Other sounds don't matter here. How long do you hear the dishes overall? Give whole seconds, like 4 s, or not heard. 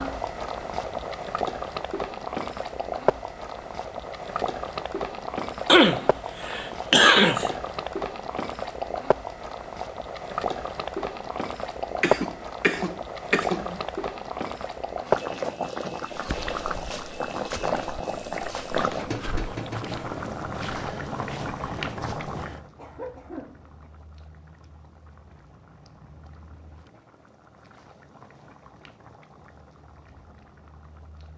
not heard.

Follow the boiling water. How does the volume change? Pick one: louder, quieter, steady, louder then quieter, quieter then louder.
quieter.